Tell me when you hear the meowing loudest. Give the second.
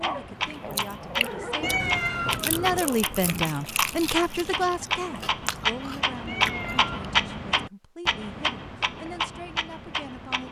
2 s.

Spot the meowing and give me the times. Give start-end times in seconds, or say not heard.
1.6-2.9, 6.2-7.2.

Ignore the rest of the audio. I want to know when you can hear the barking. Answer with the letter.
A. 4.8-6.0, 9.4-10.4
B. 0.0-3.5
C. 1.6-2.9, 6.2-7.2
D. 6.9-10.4
B.